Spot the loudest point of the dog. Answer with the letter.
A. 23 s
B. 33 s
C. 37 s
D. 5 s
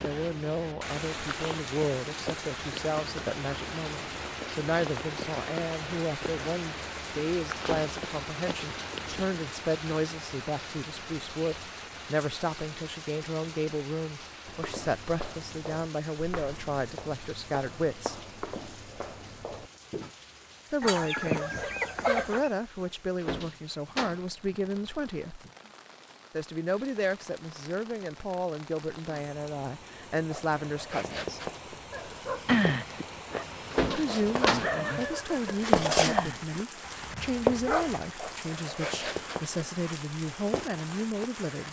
B.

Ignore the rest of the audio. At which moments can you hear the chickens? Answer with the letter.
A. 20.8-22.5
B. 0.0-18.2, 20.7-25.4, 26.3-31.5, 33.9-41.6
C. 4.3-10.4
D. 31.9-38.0
A.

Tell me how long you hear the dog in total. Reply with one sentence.
You can hear the dog for 6 seconds altogether.